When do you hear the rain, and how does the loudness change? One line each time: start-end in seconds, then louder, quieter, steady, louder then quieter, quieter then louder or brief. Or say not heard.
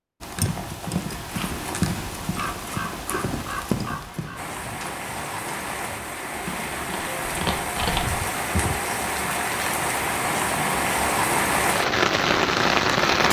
4.3-13.2 louder.